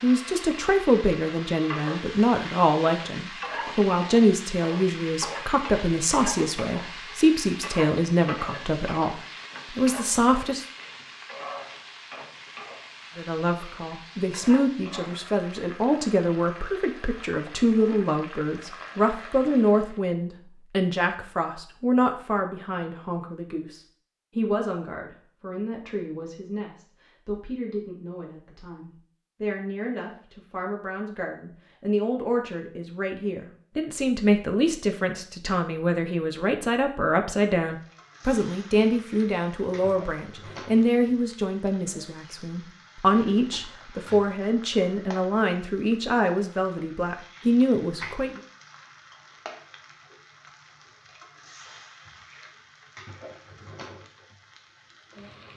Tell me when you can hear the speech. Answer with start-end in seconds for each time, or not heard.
0.0-10.7, 13.2-48.4.